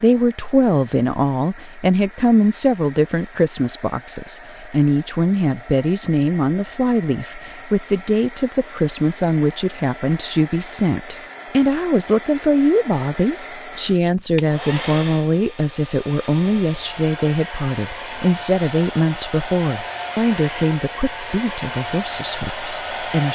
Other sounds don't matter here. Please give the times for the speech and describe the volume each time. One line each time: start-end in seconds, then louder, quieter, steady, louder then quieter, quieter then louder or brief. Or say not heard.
0.0-23.3 steady.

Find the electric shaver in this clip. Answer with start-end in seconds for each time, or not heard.
not heard.